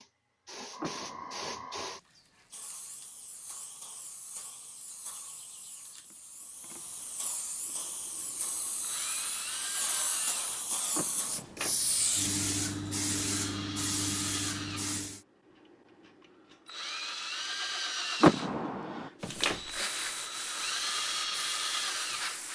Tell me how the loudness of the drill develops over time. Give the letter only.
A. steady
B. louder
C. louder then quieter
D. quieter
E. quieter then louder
B.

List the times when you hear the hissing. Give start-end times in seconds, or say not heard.
0.0-15.2, 19.2-22.5.